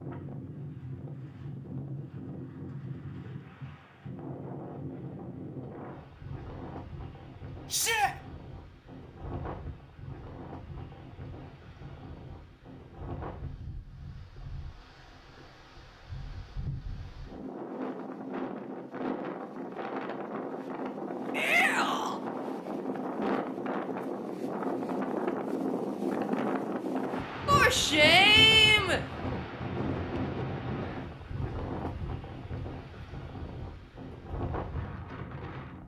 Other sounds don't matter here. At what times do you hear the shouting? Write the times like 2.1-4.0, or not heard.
7.7-8.2, 21.3-22.2, 27.4-29.0.